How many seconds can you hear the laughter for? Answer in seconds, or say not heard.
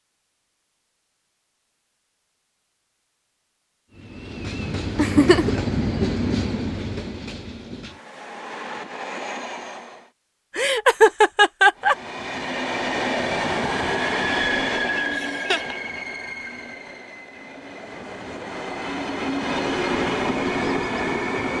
3 s.